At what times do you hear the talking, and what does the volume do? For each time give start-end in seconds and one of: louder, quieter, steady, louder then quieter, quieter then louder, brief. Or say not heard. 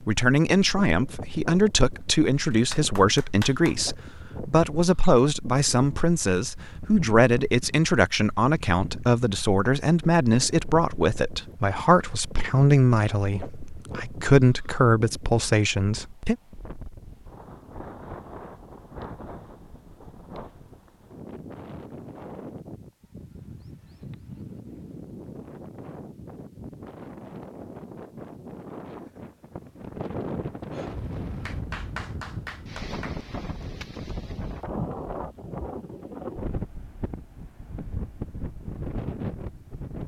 0.1-16.4 steady.